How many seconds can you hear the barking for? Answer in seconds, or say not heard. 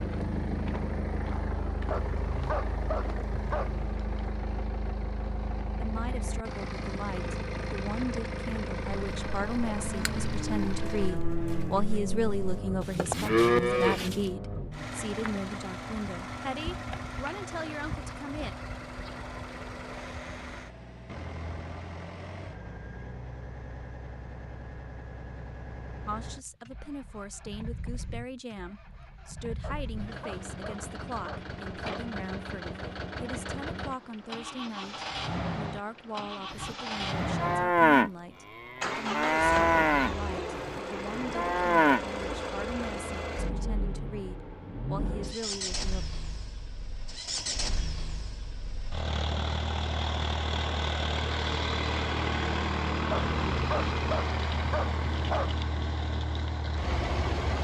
7 s.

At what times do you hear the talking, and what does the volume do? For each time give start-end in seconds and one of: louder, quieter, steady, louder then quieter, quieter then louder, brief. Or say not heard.
5.8-18.6 louder then quieter
26.1-46.0 steady.